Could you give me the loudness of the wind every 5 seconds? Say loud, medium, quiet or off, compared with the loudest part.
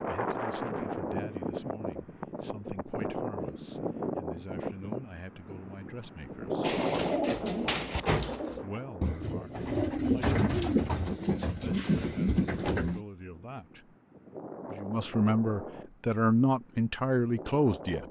loud, loud, medium, medium.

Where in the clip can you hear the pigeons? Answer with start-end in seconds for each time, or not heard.
6.6-13.0.